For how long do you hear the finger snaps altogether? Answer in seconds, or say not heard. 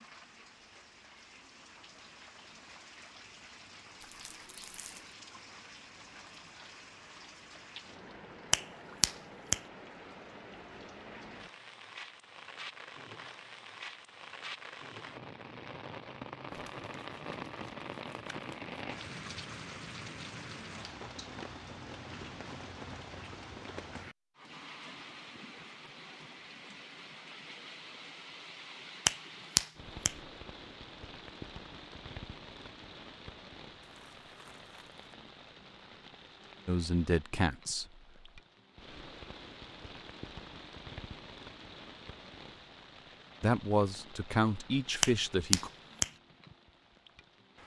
3 s.